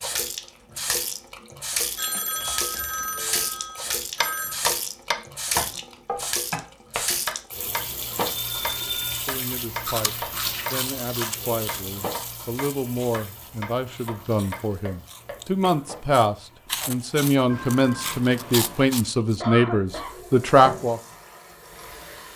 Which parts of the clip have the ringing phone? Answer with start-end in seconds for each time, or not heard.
1.9-4.6, 8.2-9.2, 17.4-18.9.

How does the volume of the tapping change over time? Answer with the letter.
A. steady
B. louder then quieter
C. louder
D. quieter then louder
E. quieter
E.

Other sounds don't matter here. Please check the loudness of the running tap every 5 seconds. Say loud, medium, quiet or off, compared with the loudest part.
loud, loud, medium, quiet, medium.